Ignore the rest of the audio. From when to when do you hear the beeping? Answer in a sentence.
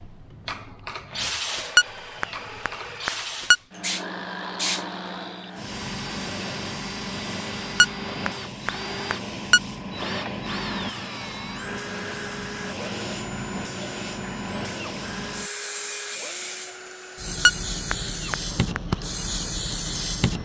You can hear the beeping from 1.8 to 3.5 s, from 7.8 to 9.6 s and from 17.4 to 18.8 s.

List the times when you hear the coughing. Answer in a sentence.
You can't hear the coughing here.